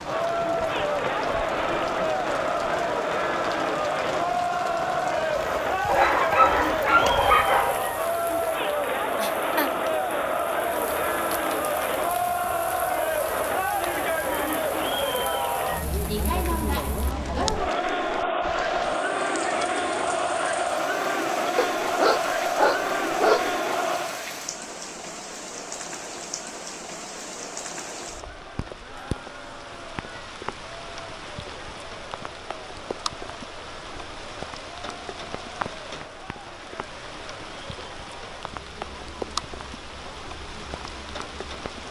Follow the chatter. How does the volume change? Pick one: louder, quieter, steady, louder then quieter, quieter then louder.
quieter.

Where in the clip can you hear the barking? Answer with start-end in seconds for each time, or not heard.
5.8-7.8, 21.6-23.5.